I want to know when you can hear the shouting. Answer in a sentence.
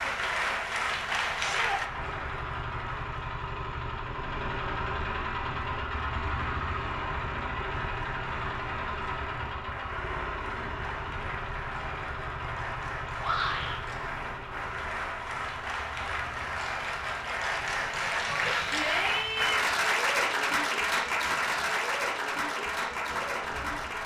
You can hear the shouting from 1.4 to 1.8 s, from 13.2 to 13.8 s and from 18.2 to 19.6 s.